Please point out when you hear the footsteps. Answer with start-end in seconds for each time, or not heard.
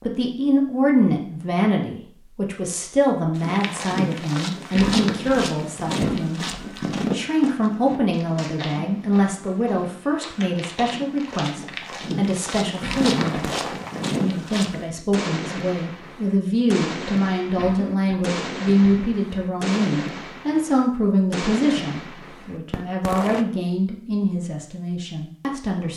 3.4-14.8.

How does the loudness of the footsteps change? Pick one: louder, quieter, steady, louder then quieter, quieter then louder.
quieter then louder.